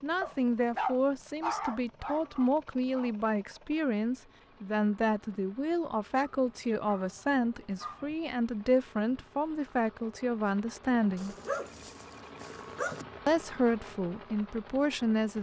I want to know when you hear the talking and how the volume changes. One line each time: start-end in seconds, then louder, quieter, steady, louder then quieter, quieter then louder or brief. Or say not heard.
0.0-11.3 steady
13.2-15.3 brief.